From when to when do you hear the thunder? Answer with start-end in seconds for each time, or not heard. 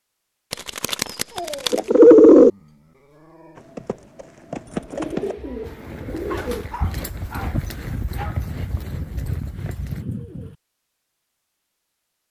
not heard.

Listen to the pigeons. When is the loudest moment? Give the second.
2 s.